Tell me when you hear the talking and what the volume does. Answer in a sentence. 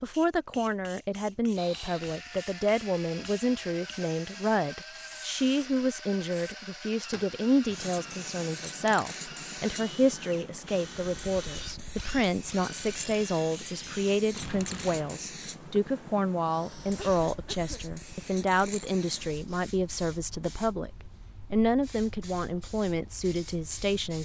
The talking can be heard from 0.0 to 20.9 s, at a steady volume; and briefly from 21.5 to 24.1 s.